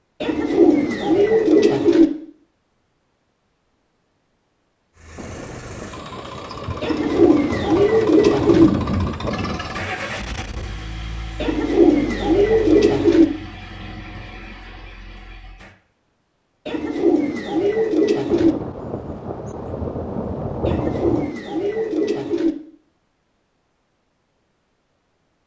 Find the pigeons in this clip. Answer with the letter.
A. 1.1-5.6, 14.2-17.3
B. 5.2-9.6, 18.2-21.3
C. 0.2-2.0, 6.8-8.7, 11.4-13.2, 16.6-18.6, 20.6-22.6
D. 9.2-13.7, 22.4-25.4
C.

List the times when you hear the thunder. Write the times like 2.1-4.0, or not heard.
5.2-9.6, 18.2-21.3.